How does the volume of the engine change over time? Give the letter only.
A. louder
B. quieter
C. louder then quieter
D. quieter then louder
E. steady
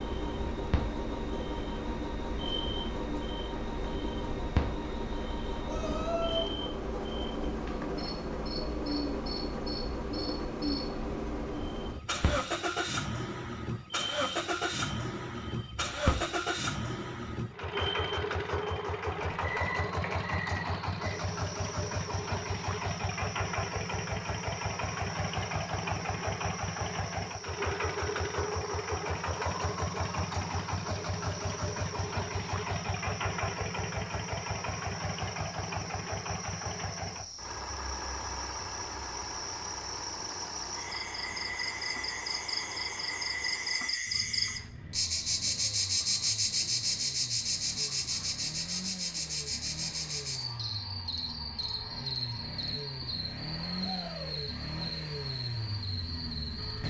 B.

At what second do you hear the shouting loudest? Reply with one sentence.
The volume of the shouting peaks at 6 seconds.